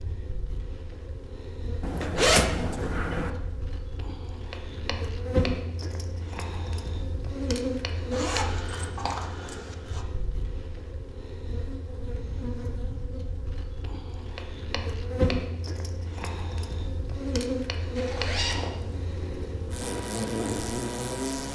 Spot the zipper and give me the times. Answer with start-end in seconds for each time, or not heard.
1.8-3.3, 8.1-10.1, 17.9-19.1.